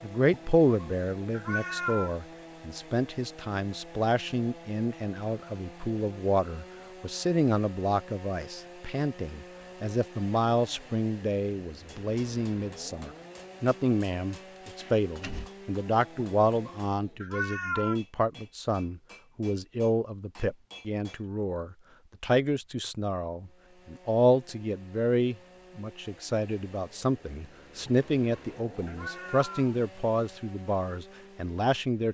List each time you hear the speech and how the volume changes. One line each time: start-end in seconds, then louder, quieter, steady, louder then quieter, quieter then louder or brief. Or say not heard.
0.0-32.0 steady.